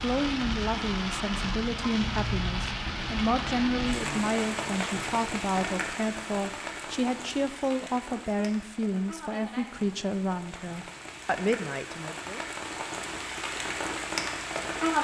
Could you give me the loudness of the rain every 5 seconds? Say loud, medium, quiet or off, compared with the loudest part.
loud, medium, loud.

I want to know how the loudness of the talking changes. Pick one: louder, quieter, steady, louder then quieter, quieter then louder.
steady.